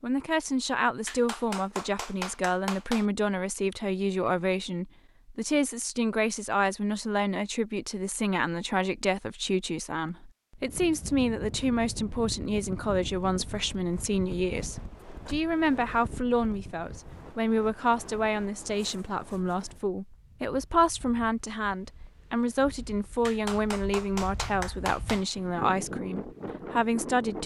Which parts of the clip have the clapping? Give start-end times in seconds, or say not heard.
1.1-3.0, 23.2-25.2.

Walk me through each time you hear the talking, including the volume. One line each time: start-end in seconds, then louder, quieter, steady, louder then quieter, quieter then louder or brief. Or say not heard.
0.0-27.4 steady.